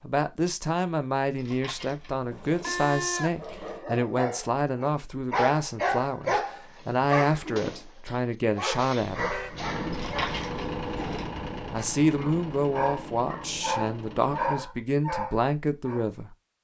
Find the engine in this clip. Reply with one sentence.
The engine can be heard from 9.5 to 14.7 s.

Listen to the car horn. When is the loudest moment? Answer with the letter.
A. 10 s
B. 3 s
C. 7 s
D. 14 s
B.